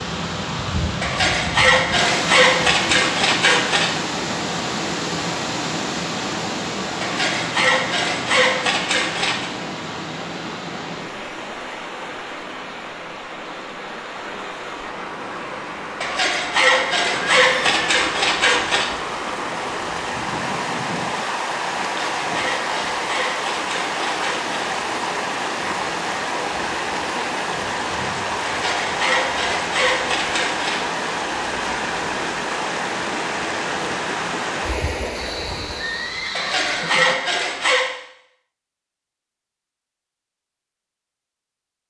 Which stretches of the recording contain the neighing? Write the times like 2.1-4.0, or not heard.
17.1-17.9, 35.1-37.1.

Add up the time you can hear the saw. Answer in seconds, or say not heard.
15 s.